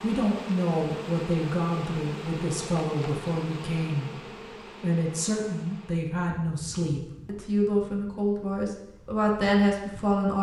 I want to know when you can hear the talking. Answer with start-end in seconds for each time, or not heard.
0.0-4.1, 4.8-10.3.